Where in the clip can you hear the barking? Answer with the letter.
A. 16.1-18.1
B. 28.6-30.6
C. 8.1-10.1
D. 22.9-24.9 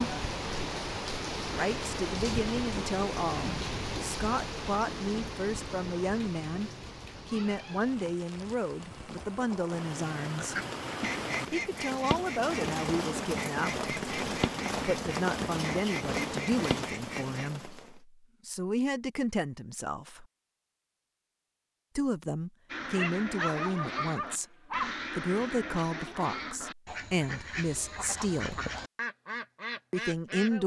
D.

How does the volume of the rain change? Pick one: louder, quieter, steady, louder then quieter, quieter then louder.
quieter then louder.